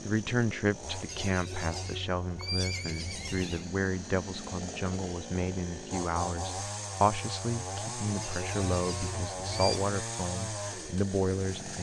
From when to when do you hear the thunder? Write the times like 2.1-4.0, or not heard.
not heard.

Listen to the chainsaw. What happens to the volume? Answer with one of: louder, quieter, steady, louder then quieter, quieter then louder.
louder.